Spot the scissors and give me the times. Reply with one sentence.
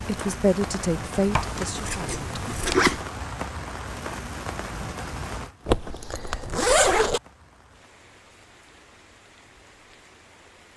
The scissors can be heard from 1.3 to 3.0 s.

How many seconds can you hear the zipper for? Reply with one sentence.
You can hear the zipper for 3 seconds altogether.